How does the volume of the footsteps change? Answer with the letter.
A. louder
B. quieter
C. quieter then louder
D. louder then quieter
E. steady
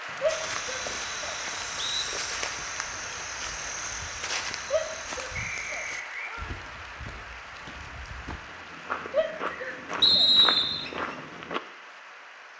C.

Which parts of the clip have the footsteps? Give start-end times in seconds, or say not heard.
0.2-11.6.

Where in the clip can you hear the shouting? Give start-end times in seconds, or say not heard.
0.2-1.4, 4.7-6.5, 9.1-10.3.